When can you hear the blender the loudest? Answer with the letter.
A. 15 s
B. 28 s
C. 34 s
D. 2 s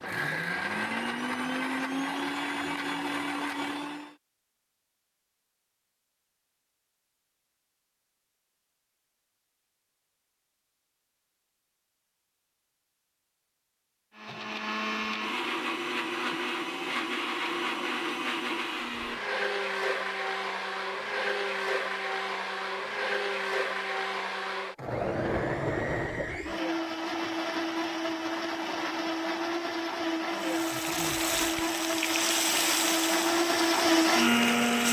C.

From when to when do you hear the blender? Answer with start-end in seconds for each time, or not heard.
0.0-4.2, 14.2-34.8.